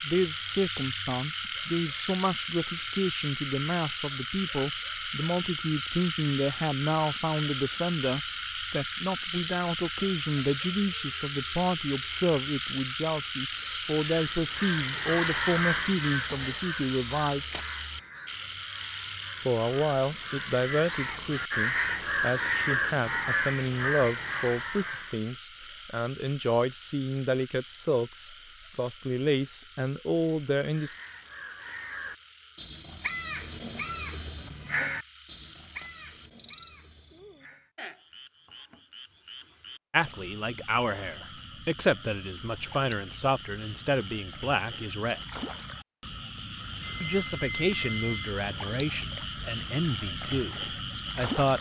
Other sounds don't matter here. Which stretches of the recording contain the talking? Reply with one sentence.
The talking can be heard from 0.0 to 17.4 s, from 19.4 to 30.9 s, from 39.9 to 45.2 s and from 47.0 to 51.5 s.